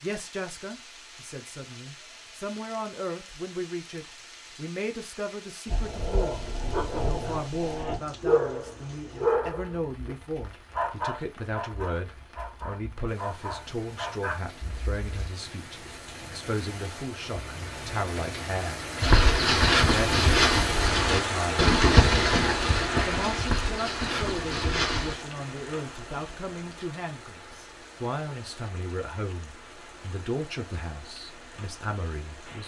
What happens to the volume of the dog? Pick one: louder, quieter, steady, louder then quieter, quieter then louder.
louder then quieter.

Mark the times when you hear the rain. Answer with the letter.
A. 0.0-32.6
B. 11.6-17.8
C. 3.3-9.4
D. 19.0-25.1
A.